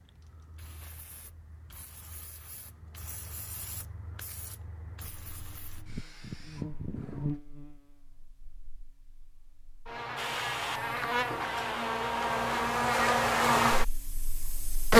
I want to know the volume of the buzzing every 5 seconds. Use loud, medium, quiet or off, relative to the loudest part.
off, quiet, loud.